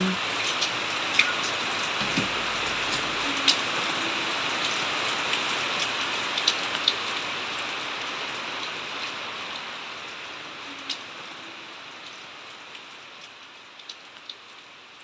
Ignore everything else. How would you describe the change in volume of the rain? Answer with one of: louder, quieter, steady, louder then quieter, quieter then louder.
quieter.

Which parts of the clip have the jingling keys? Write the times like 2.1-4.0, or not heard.
2.0-3.2.